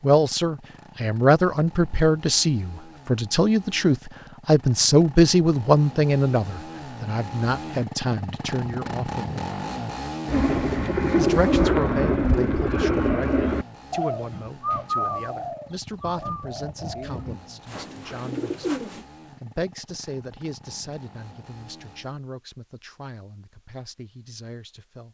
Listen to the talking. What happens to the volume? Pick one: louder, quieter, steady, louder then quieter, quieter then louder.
quieter.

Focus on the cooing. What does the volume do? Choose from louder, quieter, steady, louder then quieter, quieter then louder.
quieter.